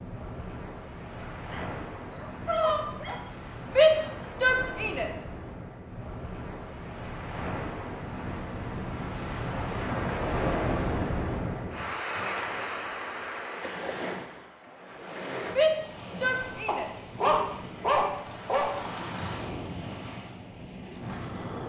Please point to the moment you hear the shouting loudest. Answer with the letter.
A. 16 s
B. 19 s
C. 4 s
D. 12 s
C.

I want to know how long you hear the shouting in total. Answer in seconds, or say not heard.
3 s.